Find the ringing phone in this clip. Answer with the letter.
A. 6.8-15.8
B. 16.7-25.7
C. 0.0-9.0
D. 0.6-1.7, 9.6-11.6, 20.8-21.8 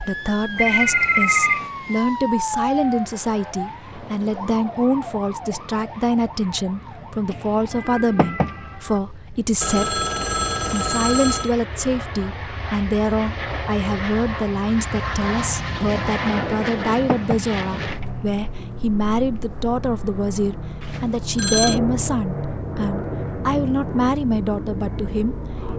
D.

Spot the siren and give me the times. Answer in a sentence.
You can hear the siren from 0.0 to 9.0 s.